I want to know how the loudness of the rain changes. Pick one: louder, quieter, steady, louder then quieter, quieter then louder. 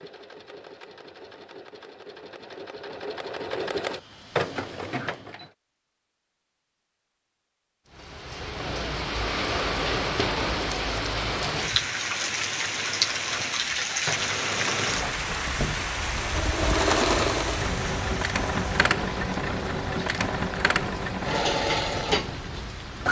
quieter.